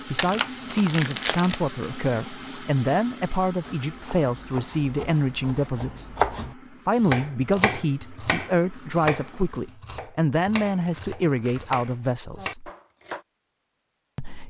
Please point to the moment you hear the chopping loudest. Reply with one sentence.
The loudest moment of the chopping is at 6 seconds.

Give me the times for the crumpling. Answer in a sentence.
You can hear the crumpling from 0.1 to 1.6 s and from 10.8 to 12.2 s.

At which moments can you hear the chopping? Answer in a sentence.
You can hear the chopping from 3.6 to 13.2 s.